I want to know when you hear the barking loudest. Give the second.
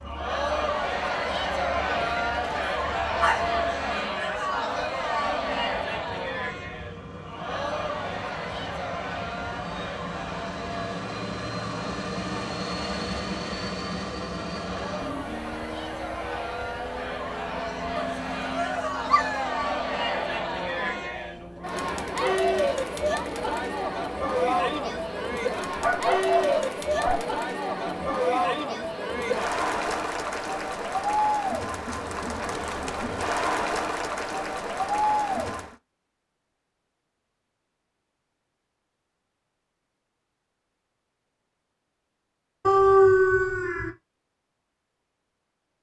43 s.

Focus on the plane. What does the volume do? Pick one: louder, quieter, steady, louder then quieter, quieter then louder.
louder then quieter.